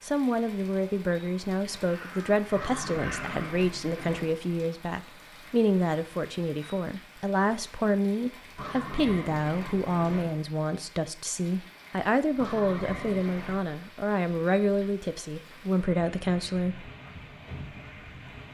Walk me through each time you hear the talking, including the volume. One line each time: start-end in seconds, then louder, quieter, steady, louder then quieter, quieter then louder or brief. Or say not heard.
0.0-16.9 steady.